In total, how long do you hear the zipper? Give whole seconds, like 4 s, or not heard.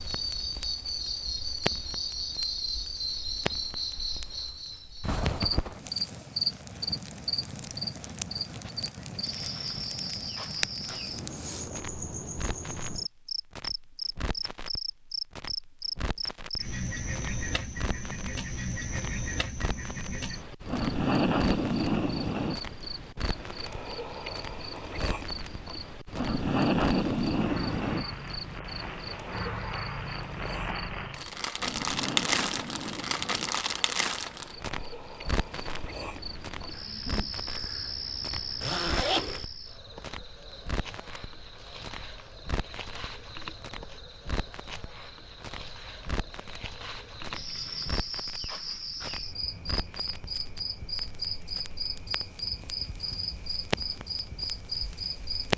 2 s.